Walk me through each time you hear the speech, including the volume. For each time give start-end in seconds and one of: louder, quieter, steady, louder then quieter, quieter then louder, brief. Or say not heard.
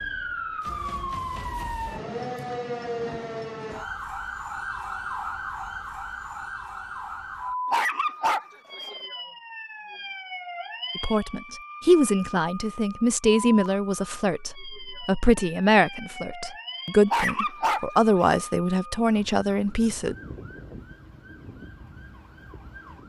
10.9-20.1 steady.